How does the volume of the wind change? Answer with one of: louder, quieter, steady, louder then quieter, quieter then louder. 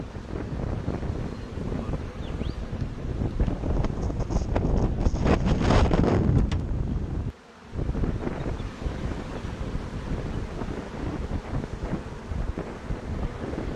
louder then quieter.